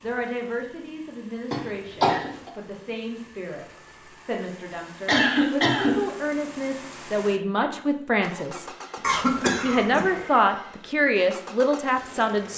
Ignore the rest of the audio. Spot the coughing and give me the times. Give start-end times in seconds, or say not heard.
1.5-2.3, 5.0-6.0, 9.0-10.1.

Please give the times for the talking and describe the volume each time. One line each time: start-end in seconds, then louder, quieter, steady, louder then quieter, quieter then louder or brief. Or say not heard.
0.0-12.5 louder.